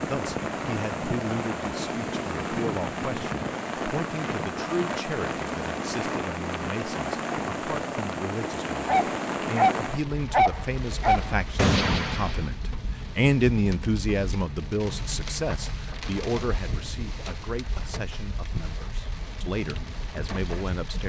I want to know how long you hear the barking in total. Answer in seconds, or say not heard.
4 s.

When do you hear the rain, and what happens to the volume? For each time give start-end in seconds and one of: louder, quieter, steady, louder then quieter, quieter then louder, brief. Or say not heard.
0.0-21.0 quieter.